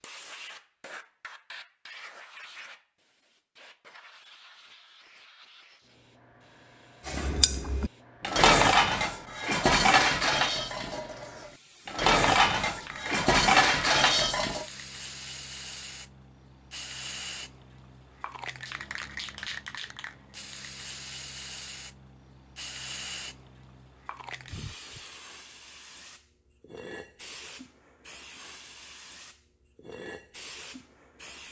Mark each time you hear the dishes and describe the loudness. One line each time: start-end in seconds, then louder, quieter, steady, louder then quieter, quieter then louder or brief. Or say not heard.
7.0-14.7 quieter then louder.